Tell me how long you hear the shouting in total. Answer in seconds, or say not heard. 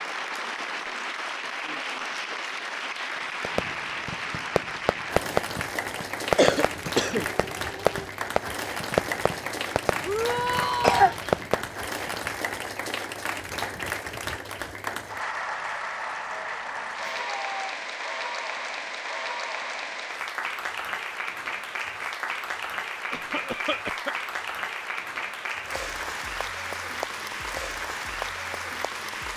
2 s.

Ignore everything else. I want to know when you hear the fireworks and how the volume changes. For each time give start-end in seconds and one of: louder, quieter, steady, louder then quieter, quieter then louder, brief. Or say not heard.
3.4-12.2 steady.